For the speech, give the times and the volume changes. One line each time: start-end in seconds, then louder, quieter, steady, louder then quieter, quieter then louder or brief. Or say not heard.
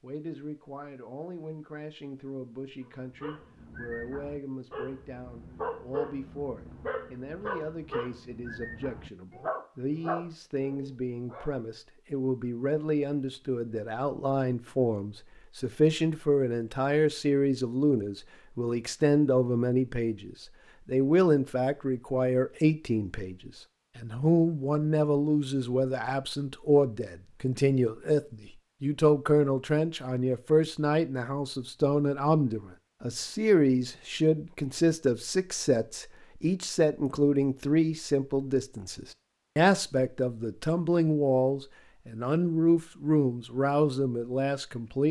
0.0-45.0 louder.